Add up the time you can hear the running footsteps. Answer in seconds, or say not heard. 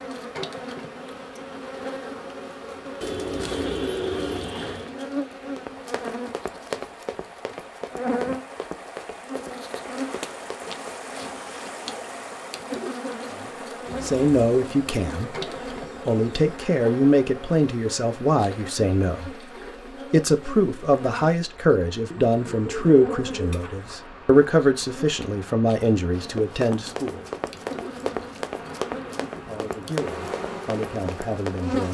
11 s.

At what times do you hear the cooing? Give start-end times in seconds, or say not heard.
3.0-5.0, 13.8-16.6, 22.1-23.9.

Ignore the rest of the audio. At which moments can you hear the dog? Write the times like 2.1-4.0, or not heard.
not heard.